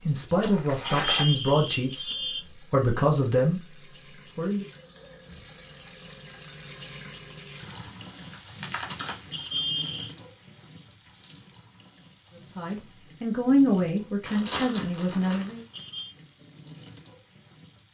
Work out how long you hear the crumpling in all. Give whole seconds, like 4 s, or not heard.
5 s.